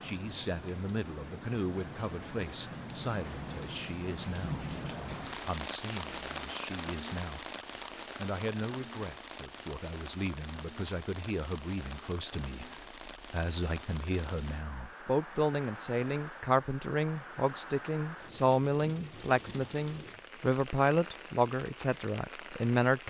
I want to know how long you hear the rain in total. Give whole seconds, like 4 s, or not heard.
23 s.